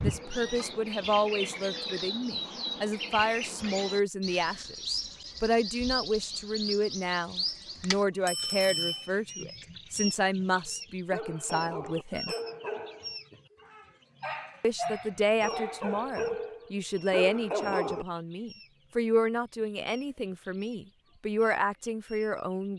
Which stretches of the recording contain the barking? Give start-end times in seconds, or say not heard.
10.7-18.1.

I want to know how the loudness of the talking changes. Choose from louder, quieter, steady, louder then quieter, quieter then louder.
steady.